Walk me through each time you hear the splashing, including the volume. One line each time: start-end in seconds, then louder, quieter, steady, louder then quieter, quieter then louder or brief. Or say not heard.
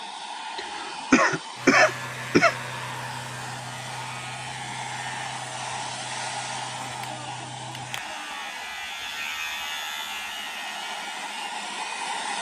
not heard.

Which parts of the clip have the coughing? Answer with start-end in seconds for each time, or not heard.
0.6-2.5.